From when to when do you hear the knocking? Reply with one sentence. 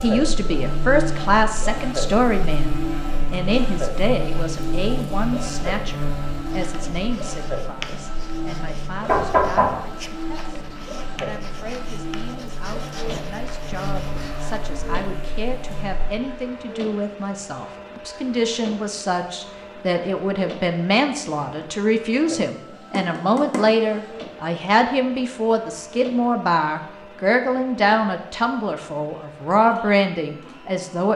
You can hear the knocking from 9.1 to 9.8 s and from 22.9 to 23.6 s.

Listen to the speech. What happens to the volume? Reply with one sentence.
The volume of the speech goes down, then up.